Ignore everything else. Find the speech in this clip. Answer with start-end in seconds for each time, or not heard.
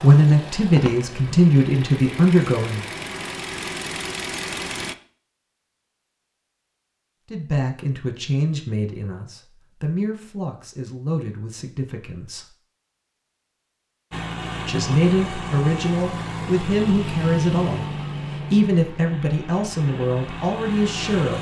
0.0-2.8, 7.3-12.5, 14.7-21.3.